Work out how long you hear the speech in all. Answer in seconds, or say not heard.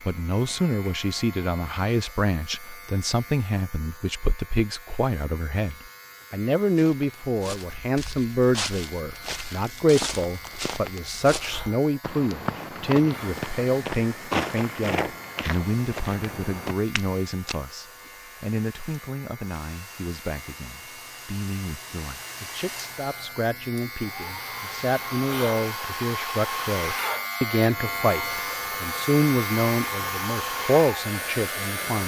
32 s.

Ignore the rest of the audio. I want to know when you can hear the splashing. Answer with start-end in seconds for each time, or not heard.
not heard.